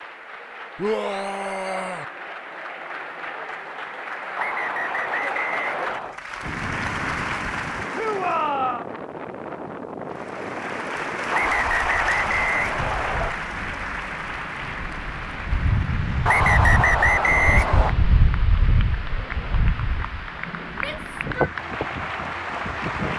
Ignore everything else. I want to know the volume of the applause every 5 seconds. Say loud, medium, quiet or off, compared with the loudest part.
medium, loud, loud, medium, loud.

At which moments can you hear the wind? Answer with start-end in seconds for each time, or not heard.
6.4-23.1.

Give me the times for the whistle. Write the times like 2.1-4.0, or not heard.
4.3-6.2, 11.3-13.3, 16.2-17.9.